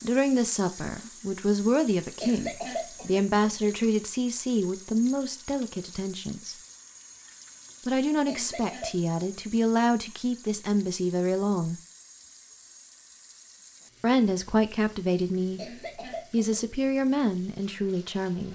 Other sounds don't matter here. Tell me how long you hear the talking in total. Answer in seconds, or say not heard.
14 s.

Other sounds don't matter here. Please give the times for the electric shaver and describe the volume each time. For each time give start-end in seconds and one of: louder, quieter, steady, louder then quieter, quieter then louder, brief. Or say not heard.
not heard.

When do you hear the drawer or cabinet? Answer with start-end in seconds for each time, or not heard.
not heard.